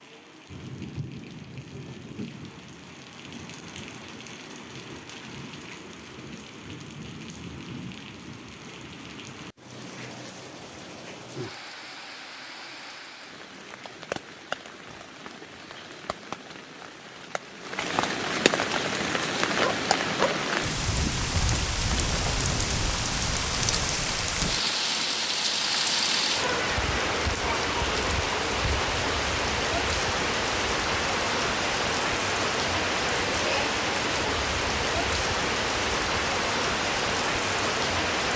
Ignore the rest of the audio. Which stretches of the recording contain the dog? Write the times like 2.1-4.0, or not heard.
19.6-20.4.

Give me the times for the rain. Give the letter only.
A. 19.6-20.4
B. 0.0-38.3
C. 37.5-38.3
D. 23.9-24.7
B.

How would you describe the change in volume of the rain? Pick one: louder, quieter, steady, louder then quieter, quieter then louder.
louder.